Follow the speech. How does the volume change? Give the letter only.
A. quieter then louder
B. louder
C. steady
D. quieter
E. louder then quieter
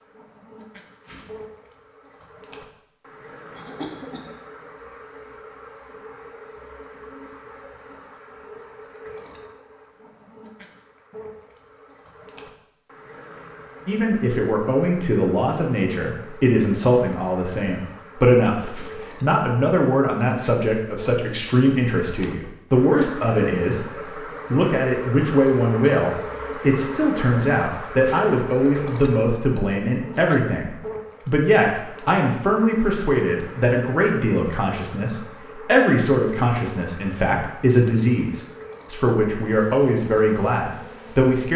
C.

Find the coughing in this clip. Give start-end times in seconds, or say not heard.
3.5-4.2.